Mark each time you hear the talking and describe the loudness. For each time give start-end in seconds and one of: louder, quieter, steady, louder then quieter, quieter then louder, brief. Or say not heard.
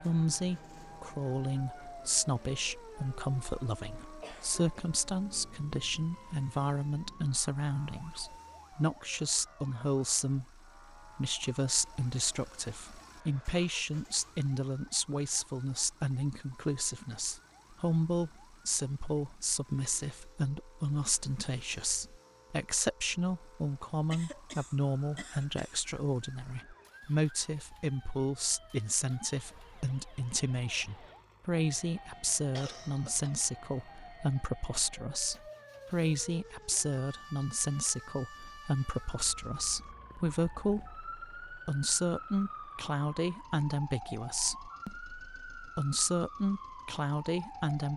0.0-47.9 steady.